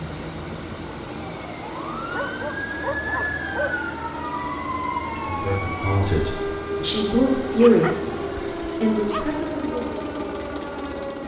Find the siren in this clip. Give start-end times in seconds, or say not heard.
0.0-11.2.